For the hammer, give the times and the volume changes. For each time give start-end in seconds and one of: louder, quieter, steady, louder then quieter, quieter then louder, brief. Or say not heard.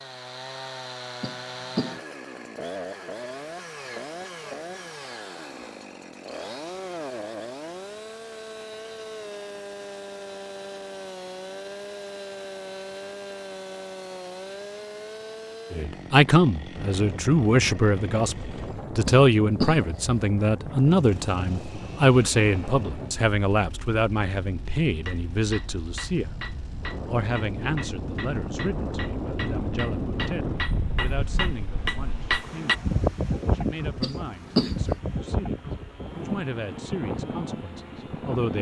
24.9-32.8 louder.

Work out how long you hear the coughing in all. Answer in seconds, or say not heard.
3 s.